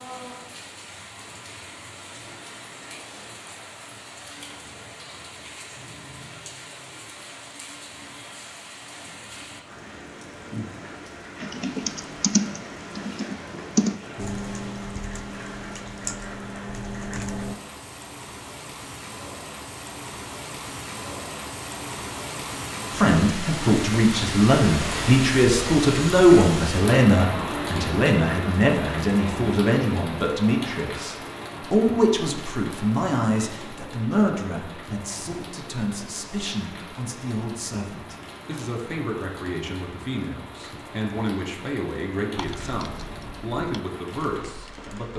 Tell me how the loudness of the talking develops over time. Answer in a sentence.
The loudness of the talking goes down.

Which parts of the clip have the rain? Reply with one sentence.
You can hear the rain from 0.0 to 45.1 s.